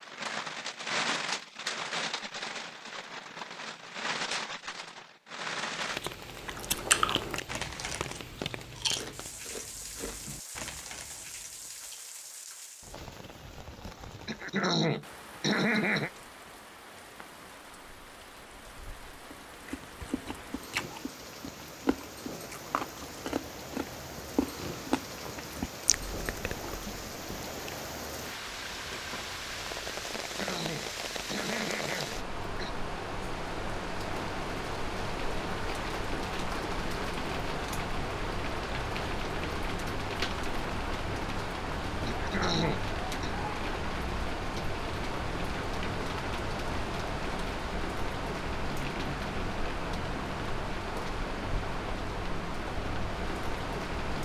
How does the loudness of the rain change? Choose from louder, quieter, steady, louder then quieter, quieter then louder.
quieter then louder.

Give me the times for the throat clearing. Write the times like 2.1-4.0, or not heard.
14.2-16.1, 30.1-32.8, 42.0-43.4.